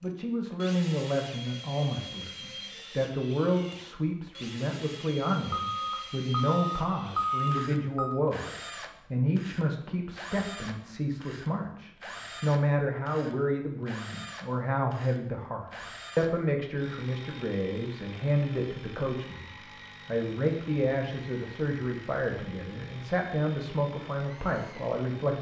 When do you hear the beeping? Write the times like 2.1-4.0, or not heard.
5.5-8.2.